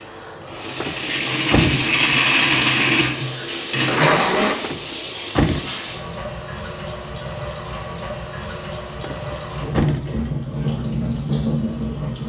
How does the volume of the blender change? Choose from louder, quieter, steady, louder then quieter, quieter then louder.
louder.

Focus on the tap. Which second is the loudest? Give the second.
11 s.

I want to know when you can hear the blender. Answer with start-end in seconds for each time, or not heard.
0.0-4.5.